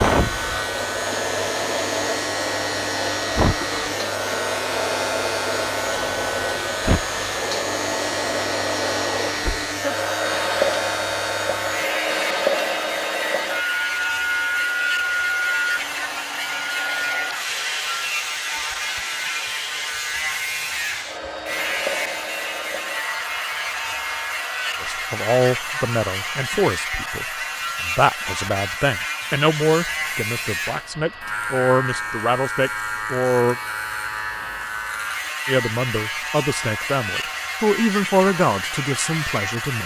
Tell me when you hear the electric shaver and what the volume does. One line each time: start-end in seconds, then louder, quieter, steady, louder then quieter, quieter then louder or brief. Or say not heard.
0.0-39.8 steady.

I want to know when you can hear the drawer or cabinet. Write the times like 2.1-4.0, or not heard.
not heard.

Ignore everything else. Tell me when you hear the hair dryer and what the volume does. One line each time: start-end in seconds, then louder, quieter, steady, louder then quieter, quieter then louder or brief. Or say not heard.
0.0-39.8 quieter.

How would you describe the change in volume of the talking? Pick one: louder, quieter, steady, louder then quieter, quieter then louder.
steady.